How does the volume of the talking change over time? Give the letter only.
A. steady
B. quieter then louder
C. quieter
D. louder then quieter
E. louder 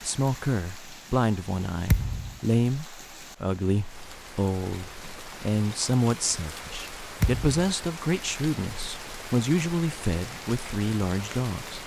A.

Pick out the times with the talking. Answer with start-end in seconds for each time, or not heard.
0.0-11.8.